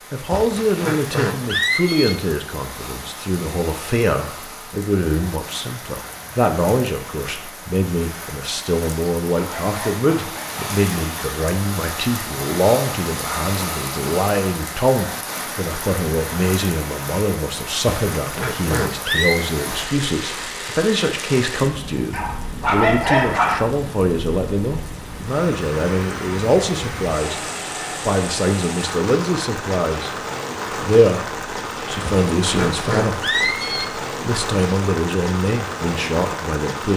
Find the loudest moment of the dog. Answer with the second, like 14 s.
23 s.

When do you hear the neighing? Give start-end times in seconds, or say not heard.
0.3-2.1, 17.9-19.4, 32.0-33.9.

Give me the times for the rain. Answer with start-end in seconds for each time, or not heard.
0.0-36.9.